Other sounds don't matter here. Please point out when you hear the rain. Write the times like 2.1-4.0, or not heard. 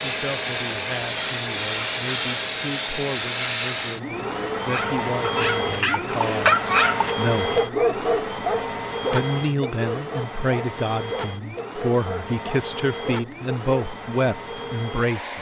not heard.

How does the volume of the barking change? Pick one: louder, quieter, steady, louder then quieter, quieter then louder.
quieter.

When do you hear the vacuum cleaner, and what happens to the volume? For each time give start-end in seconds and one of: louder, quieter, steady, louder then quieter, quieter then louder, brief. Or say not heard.
0.0-15.3 quieter.